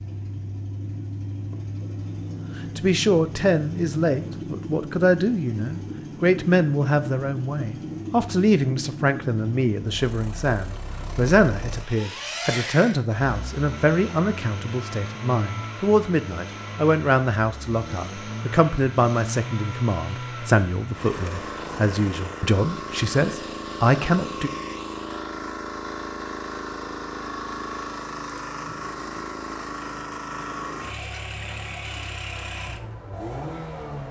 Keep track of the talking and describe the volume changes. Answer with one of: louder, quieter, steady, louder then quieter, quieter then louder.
steady.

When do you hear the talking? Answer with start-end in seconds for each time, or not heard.
2.5-24.5.